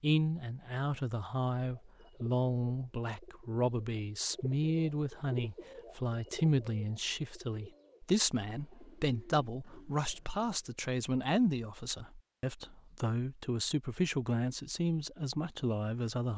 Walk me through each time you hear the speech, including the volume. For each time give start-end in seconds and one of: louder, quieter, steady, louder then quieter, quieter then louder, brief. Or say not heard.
0.0-16.3 steady.